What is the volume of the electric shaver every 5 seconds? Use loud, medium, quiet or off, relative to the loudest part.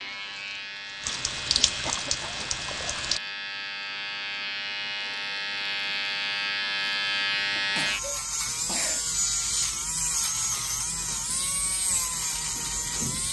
medium, loud, loud.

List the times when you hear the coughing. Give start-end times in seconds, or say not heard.
1.9-2.5, 7.5-9.1.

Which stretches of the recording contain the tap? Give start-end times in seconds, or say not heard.
0.0-3.2.